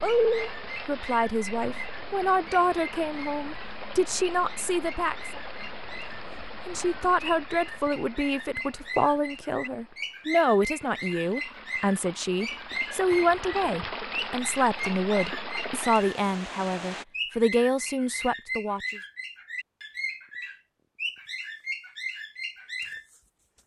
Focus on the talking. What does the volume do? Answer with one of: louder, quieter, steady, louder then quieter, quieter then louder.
steady.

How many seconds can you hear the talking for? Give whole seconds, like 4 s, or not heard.
18 s.